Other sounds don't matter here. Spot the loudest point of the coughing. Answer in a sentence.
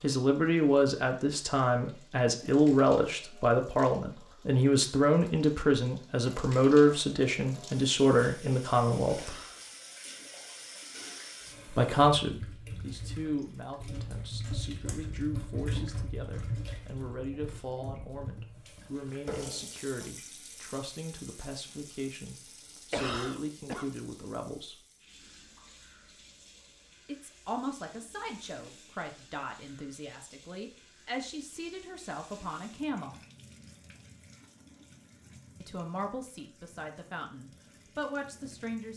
The volume of the coughing peaks at 23 seconds.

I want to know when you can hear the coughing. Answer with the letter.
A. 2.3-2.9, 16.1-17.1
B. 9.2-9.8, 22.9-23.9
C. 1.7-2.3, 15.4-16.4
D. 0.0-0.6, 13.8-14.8
B.